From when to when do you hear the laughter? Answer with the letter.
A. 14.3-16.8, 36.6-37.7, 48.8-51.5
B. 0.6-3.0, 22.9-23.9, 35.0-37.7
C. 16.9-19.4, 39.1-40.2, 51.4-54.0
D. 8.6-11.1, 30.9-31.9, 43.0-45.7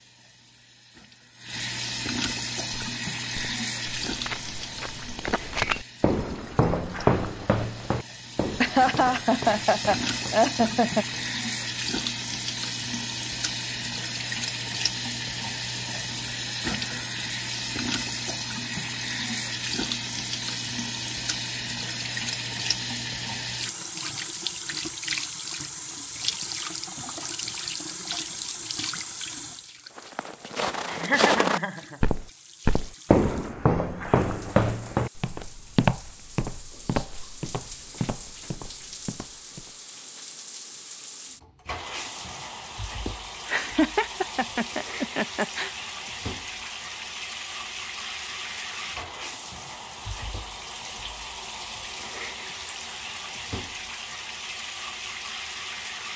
D.